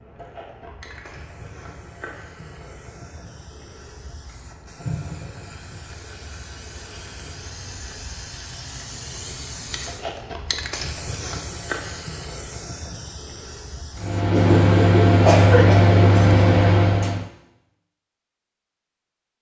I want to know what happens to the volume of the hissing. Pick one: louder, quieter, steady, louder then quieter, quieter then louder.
louder.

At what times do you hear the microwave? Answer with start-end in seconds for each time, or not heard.
13.9-17.2.